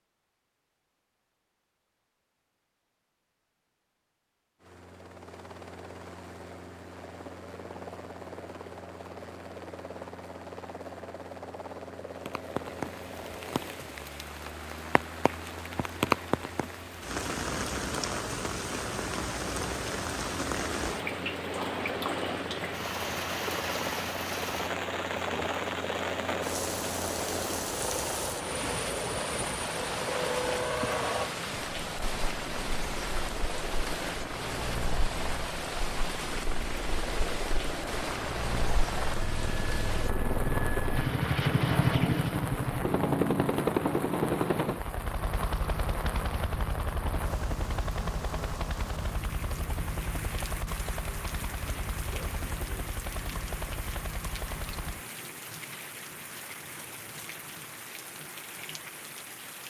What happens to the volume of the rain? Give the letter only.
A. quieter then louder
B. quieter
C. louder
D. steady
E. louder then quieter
B.